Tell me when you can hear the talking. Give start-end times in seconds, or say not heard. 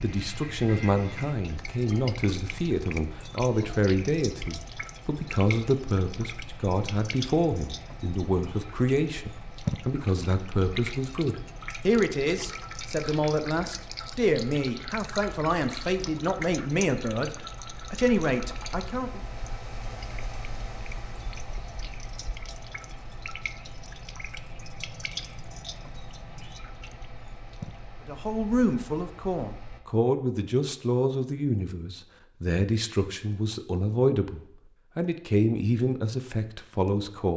0.0-19.2, 28.1-37.3.